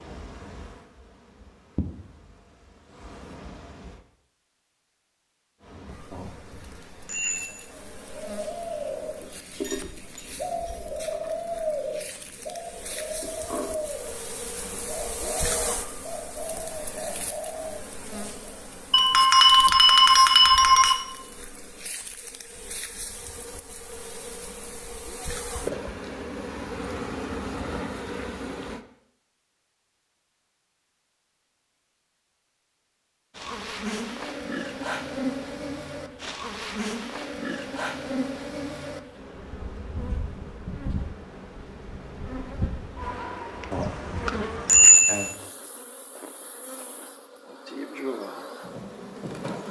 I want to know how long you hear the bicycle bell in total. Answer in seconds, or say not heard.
5 s.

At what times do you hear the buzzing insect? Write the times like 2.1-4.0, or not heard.
0.0-4.0, 5.6-28.8, 33.4-49.6.